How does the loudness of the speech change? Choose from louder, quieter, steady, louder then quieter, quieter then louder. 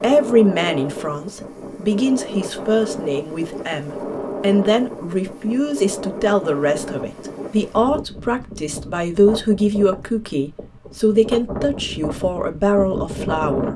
steady.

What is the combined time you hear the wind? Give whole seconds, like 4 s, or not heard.
14 s.